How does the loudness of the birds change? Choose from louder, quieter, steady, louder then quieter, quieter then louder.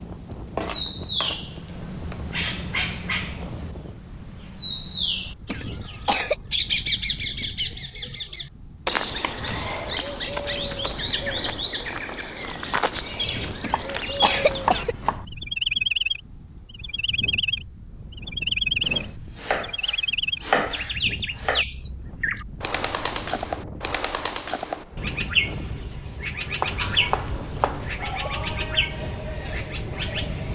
steady.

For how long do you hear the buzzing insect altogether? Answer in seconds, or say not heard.
not heard.